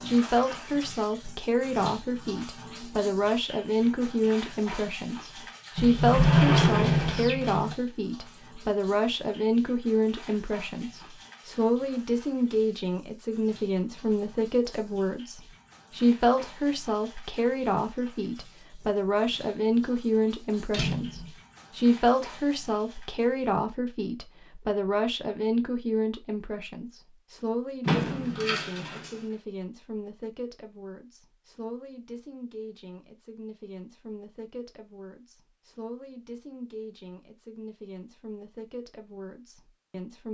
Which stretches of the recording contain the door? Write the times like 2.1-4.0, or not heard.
5.8-7.8, 20.7-21.3, 27.9-29.2.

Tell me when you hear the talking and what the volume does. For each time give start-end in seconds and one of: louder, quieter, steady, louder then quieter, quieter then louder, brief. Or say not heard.
0.0-40.2 quieter.